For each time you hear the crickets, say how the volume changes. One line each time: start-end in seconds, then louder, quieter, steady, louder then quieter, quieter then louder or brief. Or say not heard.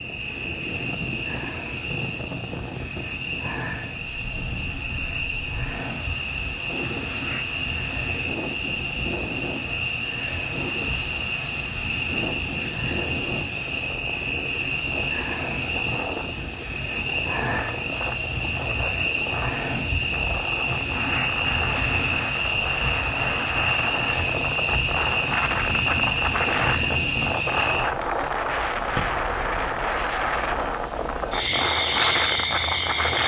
0.0-33.2 louder.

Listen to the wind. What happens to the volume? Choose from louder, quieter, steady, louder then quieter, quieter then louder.
louder.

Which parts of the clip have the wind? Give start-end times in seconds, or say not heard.
0.0-33.2.